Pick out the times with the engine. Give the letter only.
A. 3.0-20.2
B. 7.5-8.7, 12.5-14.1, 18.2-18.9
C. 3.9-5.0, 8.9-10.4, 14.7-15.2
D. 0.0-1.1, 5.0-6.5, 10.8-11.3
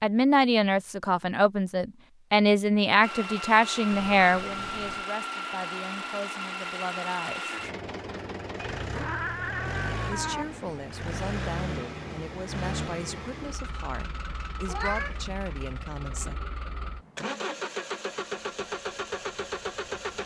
A.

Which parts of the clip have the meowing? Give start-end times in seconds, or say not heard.
3.9-5.0, 8.9-10.4, 14.7-15.2.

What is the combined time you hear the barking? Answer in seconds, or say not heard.
not heard.